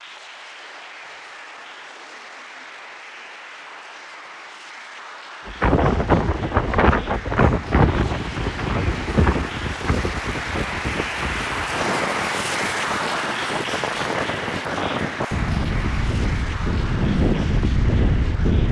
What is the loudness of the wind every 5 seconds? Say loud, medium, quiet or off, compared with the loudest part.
off, loud, medium, loud.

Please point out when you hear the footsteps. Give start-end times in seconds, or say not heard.
not heard.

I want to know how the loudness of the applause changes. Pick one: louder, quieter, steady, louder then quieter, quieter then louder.
louder then quieter.